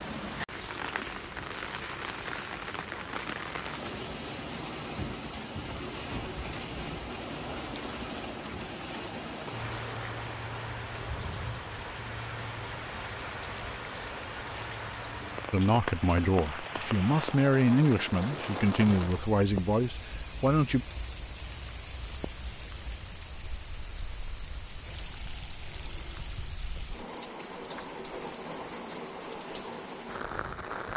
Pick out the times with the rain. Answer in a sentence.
The rain can be heard from 0.0 to 30.9 s.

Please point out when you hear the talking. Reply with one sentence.
You can hear the talking from 15.5 to 20.9 s.